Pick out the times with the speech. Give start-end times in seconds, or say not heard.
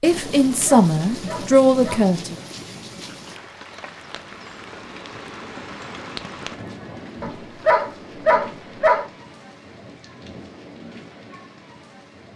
0.0-2.4.